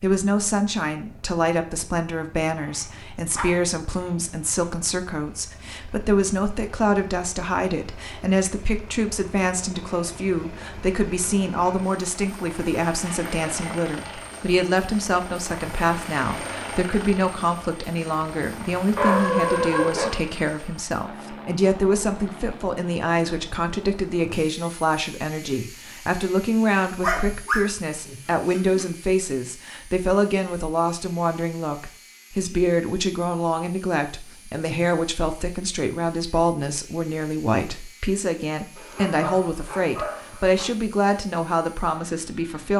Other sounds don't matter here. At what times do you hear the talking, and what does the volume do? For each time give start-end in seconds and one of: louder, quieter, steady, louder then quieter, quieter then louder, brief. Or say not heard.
0.0-42.7 steady.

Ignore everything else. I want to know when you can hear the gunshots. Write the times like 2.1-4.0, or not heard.
not heard.